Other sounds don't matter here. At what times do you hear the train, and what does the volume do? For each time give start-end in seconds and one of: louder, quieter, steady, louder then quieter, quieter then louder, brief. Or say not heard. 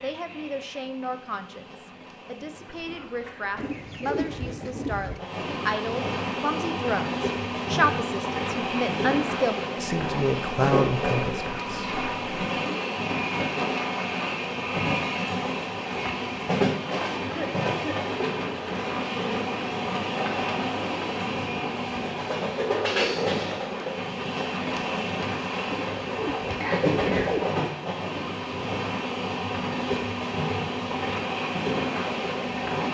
0.0-32.8 louder.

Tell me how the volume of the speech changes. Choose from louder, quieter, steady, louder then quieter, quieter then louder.
louder.